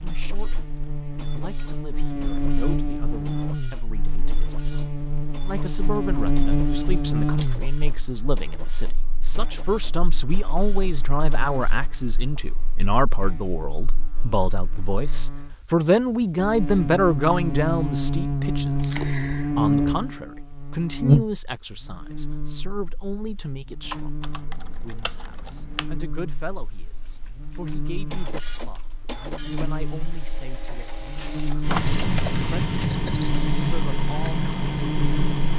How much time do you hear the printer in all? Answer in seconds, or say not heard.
19 s.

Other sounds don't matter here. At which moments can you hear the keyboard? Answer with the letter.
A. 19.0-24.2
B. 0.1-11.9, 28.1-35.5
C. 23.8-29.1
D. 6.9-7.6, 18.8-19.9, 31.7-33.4
C.